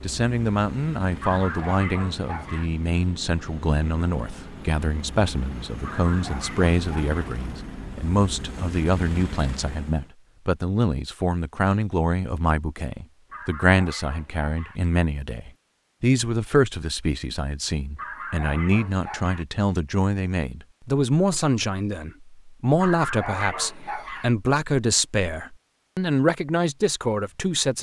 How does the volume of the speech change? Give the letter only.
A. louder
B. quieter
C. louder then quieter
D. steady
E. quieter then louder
D.